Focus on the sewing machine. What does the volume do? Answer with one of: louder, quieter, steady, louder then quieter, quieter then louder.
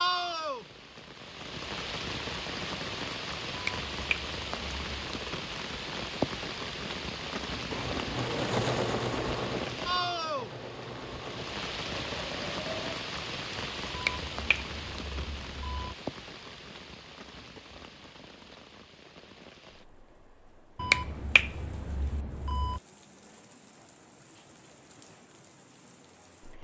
quieter.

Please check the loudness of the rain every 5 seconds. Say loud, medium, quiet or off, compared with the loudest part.
loud, loud, loud, medium, quiet, quiet.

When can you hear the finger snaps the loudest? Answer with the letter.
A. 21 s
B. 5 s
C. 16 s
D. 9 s
A.